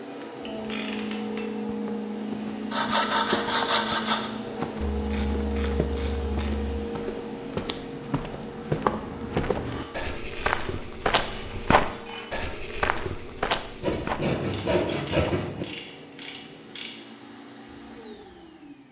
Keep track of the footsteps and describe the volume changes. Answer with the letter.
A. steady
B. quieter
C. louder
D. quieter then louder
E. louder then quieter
C.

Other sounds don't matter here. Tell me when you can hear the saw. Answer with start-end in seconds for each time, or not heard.
2.7-4.3, 13.8-15.7.